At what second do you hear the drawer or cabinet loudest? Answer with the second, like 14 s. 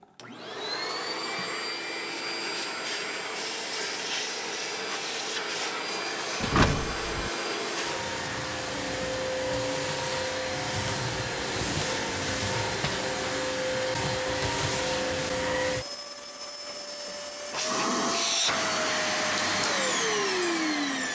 7 s.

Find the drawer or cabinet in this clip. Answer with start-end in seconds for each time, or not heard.
6.4-7.3, 11.3-13.1.